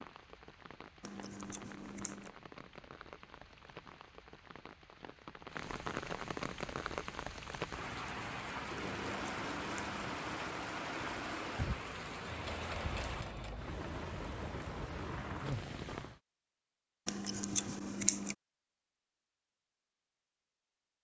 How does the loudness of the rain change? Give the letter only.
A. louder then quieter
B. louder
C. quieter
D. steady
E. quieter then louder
B.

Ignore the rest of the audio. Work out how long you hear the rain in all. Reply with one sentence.
The rain can be heard for 16 seconds in total.